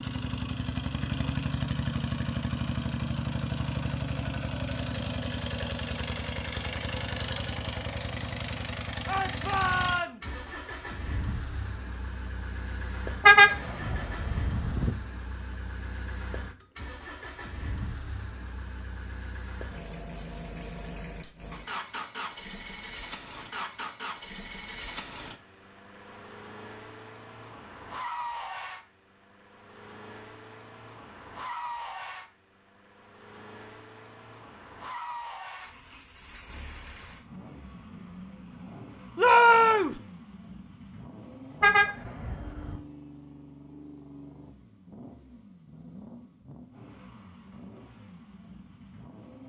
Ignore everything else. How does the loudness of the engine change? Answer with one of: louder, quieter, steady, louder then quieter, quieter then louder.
quieter.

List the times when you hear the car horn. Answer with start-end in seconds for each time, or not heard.
13.2-14.9, 41.6-42.8.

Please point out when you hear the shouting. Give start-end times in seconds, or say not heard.
9.1-10.2, 39.1-40.0.